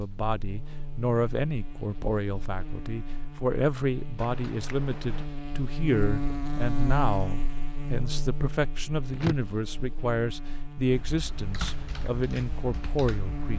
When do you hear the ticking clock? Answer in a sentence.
You can't hear the ticking clock here.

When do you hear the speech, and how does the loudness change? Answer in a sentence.
You can hear the speech from 0.0 to 13.5 s, at a steady volume.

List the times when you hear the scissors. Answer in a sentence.
You can hear the scissors from 4.2 to 5.2 s and from 9.1 to 9.5 s.